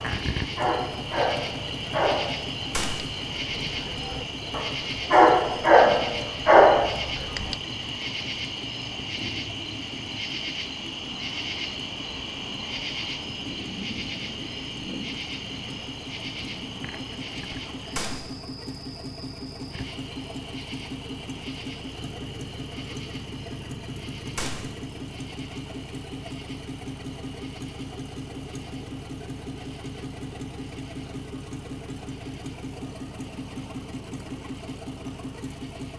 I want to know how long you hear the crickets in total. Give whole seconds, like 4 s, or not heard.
36 s.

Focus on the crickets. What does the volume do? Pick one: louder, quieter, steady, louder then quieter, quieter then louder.
quieter.